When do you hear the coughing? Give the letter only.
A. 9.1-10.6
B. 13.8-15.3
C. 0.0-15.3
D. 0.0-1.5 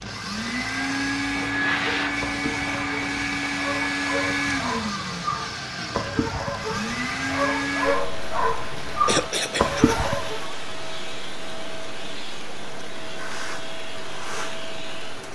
A.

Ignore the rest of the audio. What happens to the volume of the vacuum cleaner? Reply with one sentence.
The loudness of the vacuum cleaner goes down.